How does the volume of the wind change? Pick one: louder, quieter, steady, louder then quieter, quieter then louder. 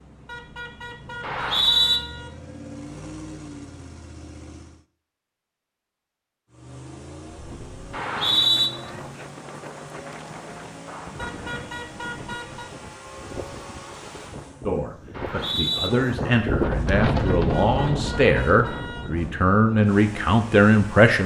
louder.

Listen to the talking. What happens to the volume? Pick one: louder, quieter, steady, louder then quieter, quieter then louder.
louder.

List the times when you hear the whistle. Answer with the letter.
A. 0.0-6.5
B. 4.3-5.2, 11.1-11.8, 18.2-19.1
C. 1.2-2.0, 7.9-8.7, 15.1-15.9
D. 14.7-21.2
C.